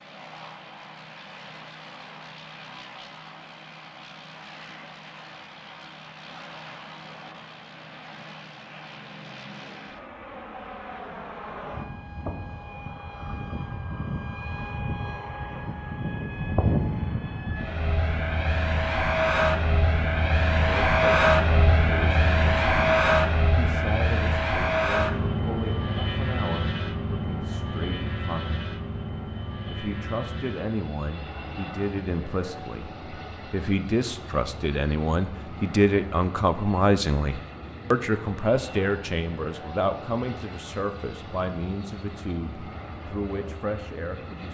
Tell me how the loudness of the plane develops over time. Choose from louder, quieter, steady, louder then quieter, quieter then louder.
louder then quieter.